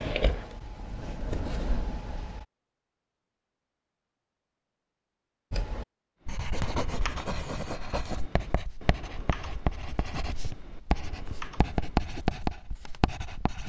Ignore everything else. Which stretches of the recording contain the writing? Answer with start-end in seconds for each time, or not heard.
0.0-2.5, 5.5-13.6.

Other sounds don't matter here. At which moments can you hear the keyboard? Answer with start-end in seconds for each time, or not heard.
6.2-12.2.